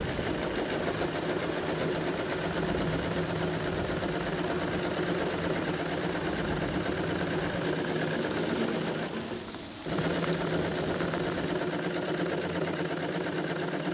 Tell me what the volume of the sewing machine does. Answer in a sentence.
The loudness of the sewing machine stays about the same.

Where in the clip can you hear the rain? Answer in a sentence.
The rain can be heard from 0.0 to 11.6 s.